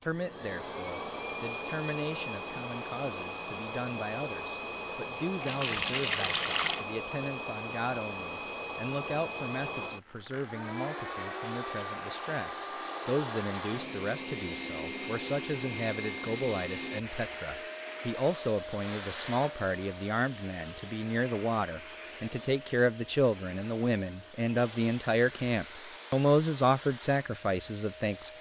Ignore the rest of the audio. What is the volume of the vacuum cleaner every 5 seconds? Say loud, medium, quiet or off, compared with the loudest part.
loud, loud, loud, loud, medium, medium.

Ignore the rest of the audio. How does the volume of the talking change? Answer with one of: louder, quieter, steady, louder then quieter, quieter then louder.
louder.